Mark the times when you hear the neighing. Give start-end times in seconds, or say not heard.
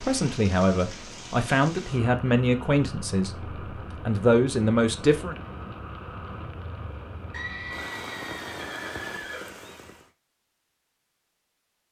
7.3-9.6.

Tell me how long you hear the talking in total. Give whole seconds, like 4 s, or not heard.
5 s.